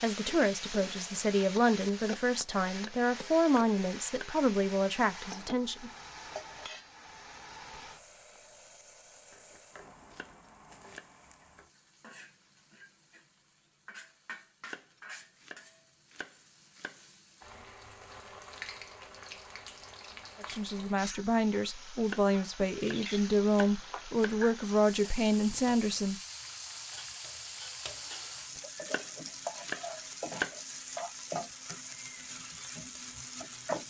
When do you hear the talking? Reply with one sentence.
The talking can be heard from 0.0 to 5.9 s and from 20.4 to 26.1 s.